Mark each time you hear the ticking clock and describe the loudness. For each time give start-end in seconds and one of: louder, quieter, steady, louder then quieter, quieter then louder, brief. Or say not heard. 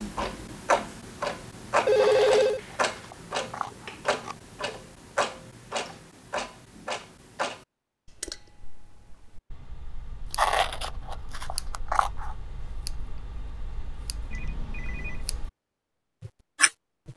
0.0-15.5 quieter
16.2-17.1 brief.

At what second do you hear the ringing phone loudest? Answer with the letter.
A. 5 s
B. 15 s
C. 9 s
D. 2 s
D.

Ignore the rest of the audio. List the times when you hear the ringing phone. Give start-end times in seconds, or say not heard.
1.9-2.6, 14.3-15.2.